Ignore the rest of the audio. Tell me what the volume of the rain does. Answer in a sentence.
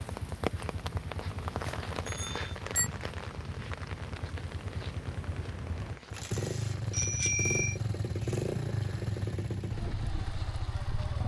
The volume of the rain goes down.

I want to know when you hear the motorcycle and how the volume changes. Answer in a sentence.
You can hear the motorcycle from 0.0 to 11.2 s, getting louder.